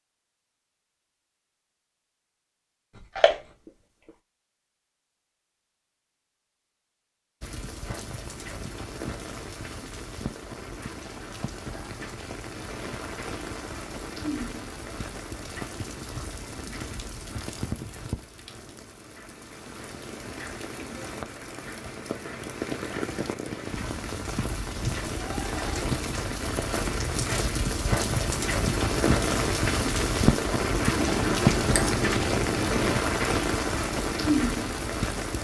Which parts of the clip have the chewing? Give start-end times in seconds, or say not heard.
3.0-3.7, 30.9-33.0.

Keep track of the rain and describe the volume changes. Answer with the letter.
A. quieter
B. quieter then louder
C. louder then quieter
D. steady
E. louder
E.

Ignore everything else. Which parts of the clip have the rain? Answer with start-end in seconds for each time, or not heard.
7.4-35.3.